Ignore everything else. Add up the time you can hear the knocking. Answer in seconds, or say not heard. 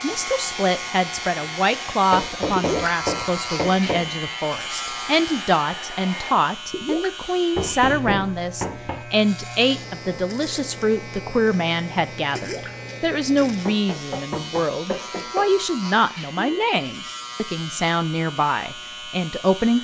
5 s.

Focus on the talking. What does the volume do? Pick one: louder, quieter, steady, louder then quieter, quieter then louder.
steady.